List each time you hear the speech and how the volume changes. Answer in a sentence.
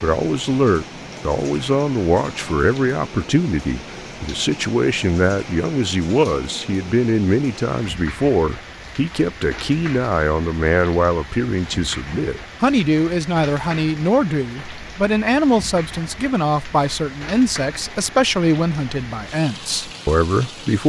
You can hear the speech from 0.0 to 20.8 s, at a steady volume.